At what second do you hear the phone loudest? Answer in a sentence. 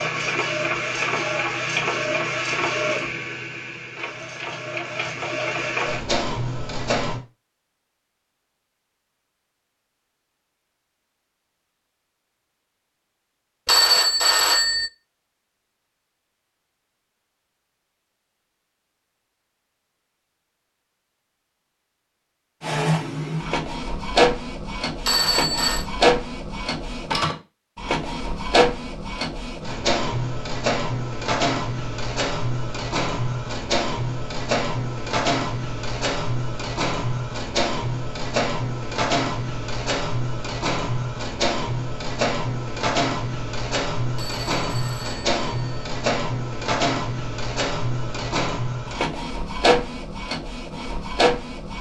The loudest moment of the phone is at 14 seconds.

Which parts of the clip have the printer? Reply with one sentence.
The printer can be heard from 0.0 to 7.2 s and from 22.6 to 51.7 s.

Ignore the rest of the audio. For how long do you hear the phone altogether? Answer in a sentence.
You can hear the phone for 4 seconds altogether.